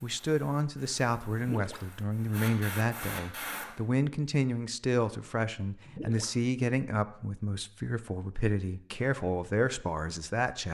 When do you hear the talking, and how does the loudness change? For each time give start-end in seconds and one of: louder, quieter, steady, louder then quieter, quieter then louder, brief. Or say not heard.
0.0-10.6 steady.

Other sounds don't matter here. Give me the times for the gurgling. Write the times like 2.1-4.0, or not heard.
1.4-1.9, 5.8-6.3.